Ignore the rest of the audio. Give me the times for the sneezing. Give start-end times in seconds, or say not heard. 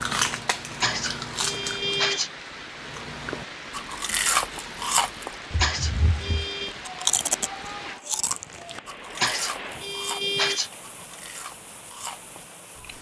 0.8-2.3, 5.6-6.8, 9.2-10.7.